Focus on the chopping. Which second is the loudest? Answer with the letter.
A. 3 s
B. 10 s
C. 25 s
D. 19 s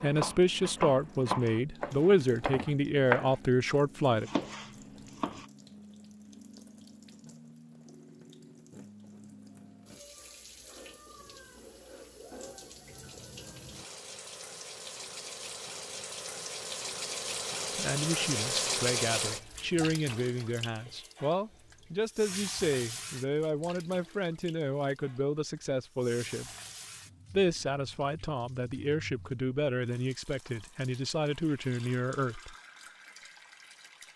A.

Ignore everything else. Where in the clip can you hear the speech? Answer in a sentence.
The speech can be heard from 0.0 to 4.3 s, from 17.7 to 26.5 s and from 27.3 to 32.5 s.